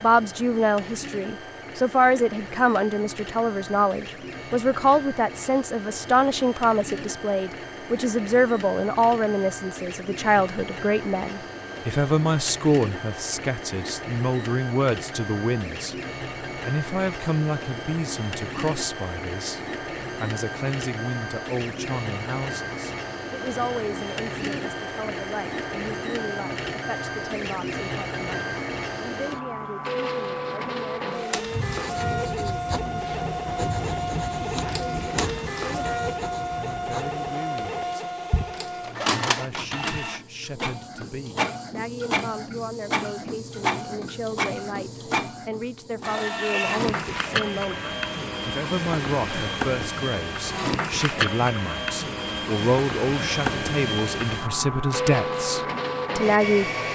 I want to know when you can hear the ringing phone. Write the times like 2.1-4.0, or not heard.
not heard.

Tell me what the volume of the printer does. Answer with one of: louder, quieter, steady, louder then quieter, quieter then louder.
louder.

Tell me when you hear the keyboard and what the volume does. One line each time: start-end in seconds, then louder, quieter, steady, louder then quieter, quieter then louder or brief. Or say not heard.
not heard.